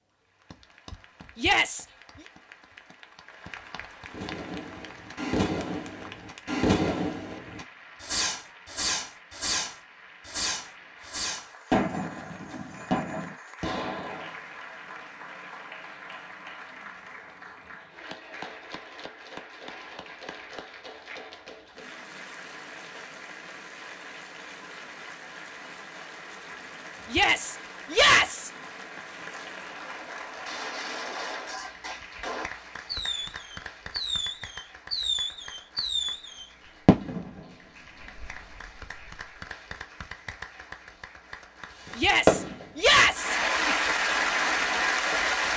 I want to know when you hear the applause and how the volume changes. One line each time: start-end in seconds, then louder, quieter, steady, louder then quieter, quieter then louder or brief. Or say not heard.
0.0-45.5 louder.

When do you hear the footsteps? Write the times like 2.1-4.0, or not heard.
not heard.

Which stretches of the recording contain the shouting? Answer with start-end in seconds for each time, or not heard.
1.4-1.9, 27.1-28.5, 42.0-43.4.